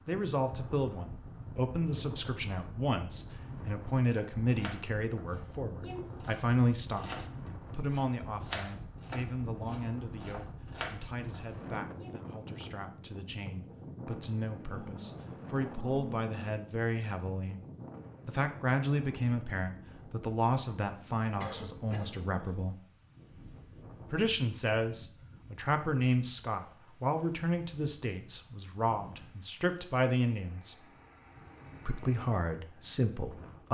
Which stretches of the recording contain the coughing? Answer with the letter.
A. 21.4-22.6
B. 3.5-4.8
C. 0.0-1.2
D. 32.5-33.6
A.